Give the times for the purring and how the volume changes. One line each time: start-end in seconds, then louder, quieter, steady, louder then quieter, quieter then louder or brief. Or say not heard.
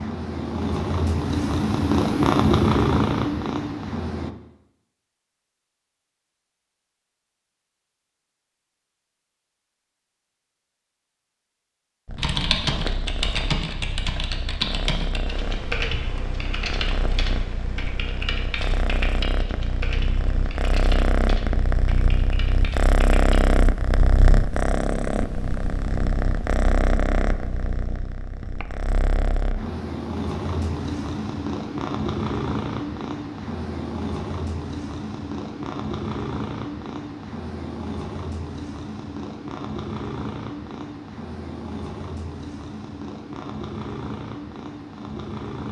0.0-4.3 louder then quieter
12.1-45.6 louder then quieter.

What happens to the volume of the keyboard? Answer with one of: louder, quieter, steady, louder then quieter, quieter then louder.
quieter.